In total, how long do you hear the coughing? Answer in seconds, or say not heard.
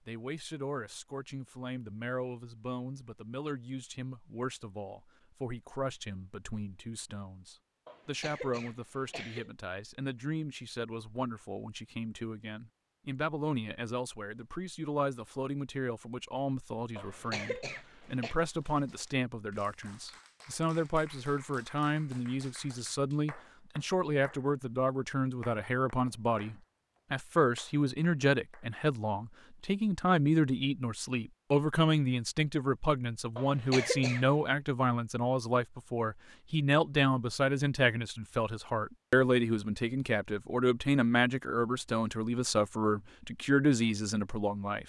4 s.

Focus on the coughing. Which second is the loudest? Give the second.
34 s.